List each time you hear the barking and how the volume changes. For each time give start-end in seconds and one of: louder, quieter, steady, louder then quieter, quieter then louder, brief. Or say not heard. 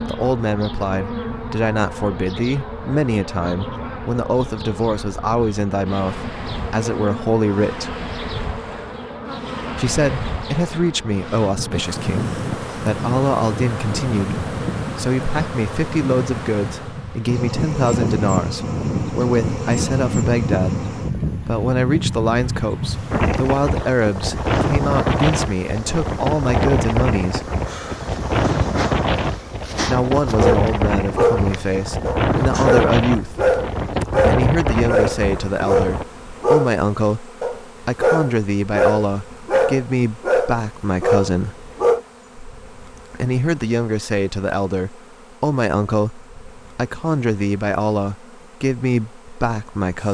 30.4-42.0 steady.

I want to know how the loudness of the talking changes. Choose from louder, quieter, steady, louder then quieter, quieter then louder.
steady.